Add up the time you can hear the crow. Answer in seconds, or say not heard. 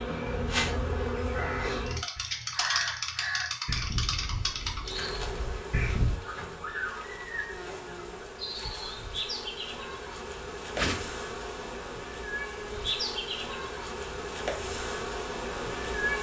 6 s.